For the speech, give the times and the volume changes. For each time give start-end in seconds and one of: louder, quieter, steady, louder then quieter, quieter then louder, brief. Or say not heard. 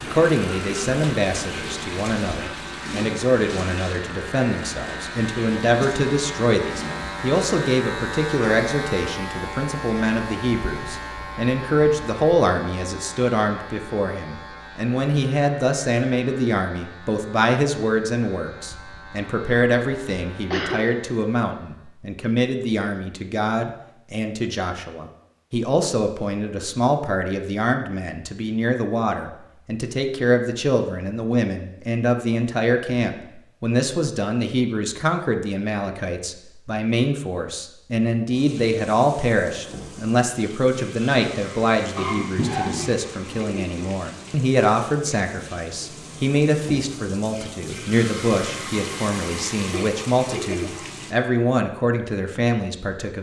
0.0-53.1 steady.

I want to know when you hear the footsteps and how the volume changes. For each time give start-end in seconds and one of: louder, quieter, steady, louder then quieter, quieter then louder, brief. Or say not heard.
not heard.